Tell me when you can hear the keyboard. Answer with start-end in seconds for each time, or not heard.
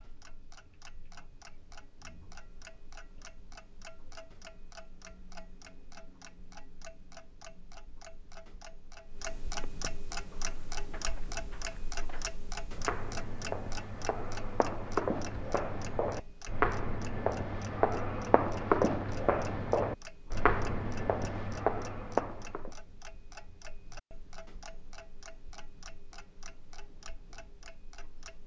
not heard.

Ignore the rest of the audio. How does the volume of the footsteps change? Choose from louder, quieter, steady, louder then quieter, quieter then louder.
louder.